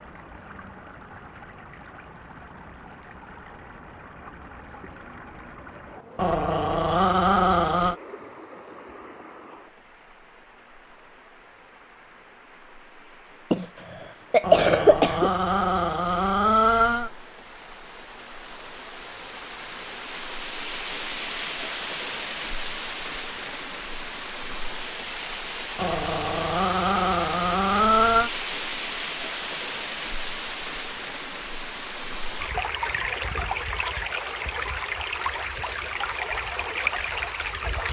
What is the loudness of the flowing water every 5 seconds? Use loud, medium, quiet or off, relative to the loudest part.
quiet, quiet, quiet, medium, loud, loud, loud, loud.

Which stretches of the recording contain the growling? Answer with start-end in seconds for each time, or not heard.
6.2-8.0, 14.4-17.1, 25.8-28.3.